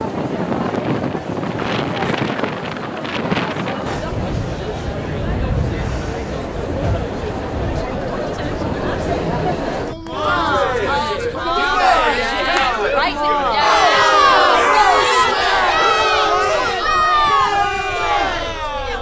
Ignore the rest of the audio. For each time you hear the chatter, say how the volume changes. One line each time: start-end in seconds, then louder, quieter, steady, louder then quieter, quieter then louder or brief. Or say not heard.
0.0-18.9 louder.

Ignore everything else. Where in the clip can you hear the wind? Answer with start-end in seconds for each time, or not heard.
0.0-18.9.